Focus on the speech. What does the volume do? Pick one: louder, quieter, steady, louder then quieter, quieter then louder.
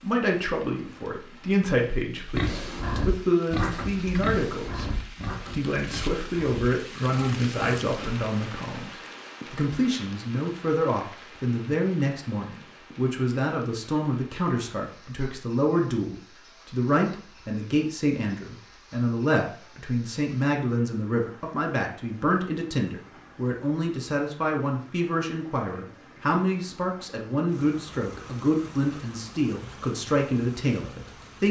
steady.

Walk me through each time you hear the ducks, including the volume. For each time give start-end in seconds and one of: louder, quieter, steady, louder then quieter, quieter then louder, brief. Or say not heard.
not heard.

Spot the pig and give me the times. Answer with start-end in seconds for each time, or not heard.
2.3-8.1.